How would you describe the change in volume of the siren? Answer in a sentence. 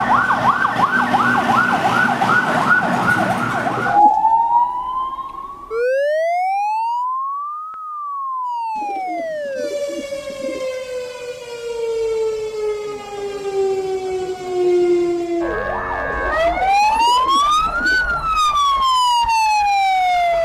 The loudness of the siren goes down, then up.